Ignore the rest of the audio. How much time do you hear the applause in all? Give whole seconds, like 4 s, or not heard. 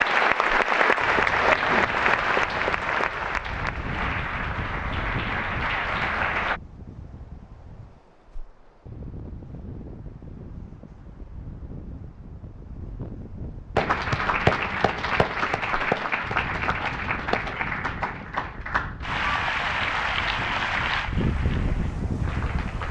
16 s.